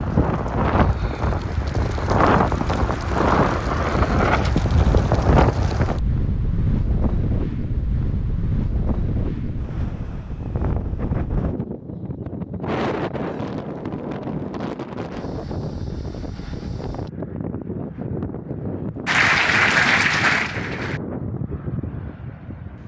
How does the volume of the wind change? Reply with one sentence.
The loudness of the wind goes down.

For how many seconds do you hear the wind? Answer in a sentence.
The wind can be heard for 23 seconds in total.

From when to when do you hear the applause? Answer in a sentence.
You can hear the applause from 19.1 to 21.0 s.